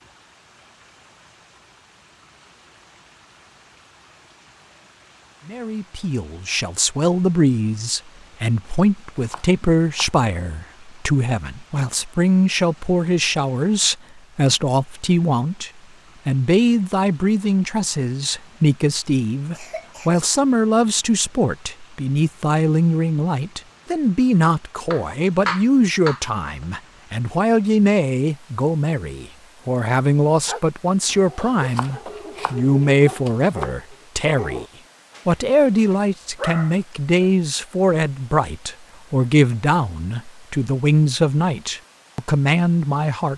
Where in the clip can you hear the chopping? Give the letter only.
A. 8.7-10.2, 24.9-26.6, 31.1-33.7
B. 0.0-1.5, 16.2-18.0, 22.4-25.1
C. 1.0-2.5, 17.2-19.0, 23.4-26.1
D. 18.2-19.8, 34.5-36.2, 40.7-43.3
A.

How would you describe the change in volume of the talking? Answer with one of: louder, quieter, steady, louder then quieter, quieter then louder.
steady.